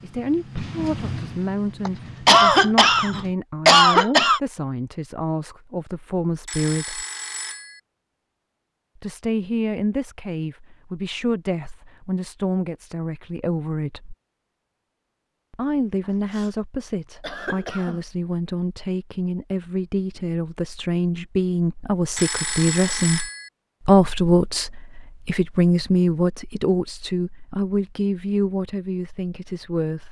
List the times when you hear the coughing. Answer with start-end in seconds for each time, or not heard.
1.9-4.4, 16.1-16.5, 17.2-18.0.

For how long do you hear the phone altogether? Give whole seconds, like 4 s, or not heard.
3 s.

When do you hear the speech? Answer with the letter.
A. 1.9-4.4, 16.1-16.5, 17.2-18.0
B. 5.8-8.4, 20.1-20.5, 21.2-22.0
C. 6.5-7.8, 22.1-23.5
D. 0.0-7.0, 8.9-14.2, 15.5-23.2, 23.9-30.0
D.